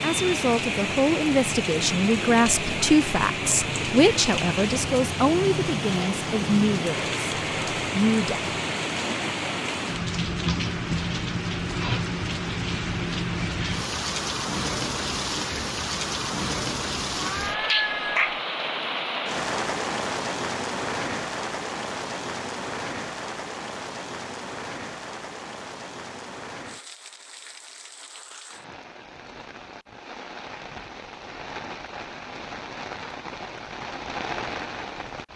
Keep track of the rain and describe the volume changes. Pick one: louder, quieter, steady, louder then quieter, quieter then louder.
quieter.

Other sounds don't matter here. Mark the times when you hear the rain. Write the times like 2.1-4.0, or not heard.
0.0-35.3.